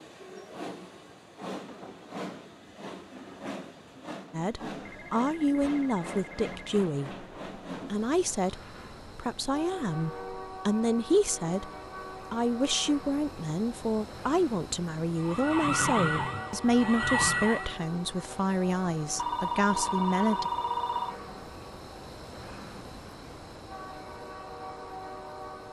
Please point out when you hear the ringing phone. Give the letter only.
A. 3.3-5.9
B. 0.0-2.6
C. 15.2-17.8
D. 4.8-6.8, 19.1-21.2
D.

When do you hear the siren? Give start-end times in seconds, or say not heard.
15.2-17.8.